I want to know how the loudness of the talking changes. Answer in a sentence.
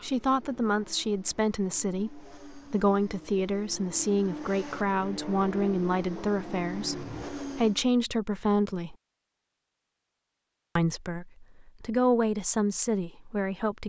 The volume of the talking stays about the same.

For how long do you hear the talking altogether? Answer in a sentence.
The talking can be heard for 12 seconds in total.